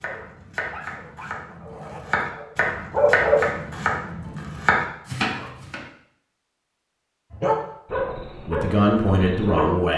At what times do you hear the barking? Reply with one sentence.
You can hear the barking from 0.0 to 3.5 s and from 7.3 to 9.7 s.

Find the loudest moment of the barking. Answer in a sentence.
The loudest moment of the barking is at 3 seconds.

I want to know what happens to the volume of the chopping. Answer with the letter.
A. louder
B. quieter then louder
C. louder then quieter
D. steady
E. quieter
A.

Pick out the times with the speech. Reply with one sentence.
You can hear the speech from 8.4 to 9.9 s.